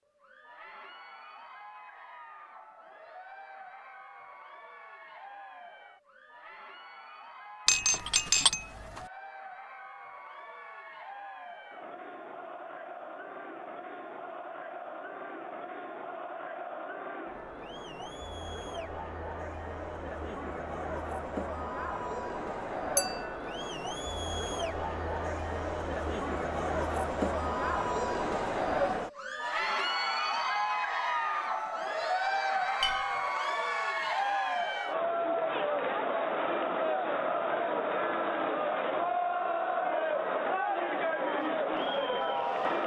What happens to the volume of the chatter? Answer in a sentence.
The volume of the chatter goes up.